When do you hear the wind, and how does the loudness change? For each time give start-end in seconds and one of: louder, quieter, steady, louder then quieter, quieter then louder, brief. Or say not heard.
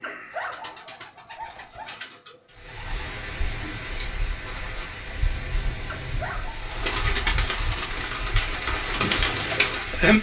2.5-10.1 steady.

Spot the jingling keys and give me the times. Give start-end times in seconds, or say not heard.
5.3-6.5.